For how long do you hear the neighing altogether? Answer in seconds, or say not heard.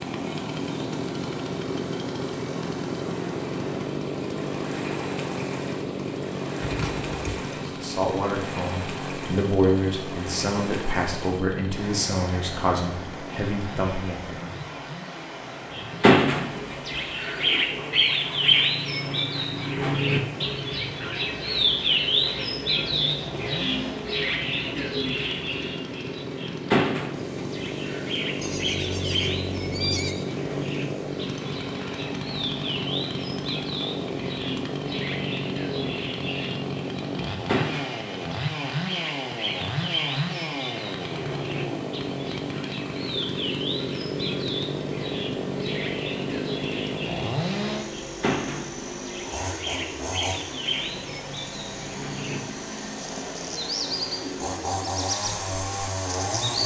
3 s.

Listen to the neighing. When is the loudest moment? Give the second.
30 s.